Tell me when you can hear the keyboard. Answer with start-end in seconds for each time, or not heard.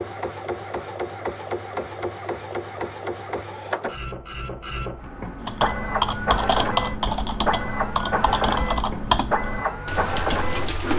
5.5-10.9.